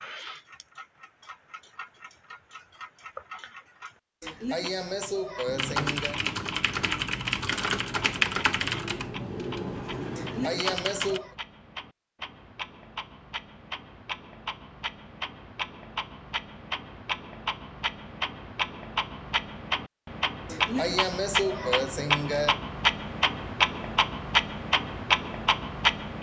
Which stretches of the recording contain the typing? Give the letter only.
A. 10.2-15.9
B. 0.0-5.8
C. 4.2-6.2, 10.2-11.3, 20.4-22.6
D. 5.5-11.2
D.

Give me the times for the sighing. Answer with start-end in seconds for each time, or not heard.
4.2-6.2, 10.2-11.3, 20.4-22.6.